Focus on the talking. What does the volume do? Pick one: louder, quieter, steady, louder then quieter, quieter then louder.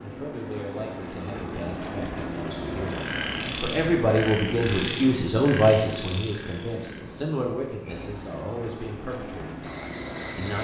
louder then quieter.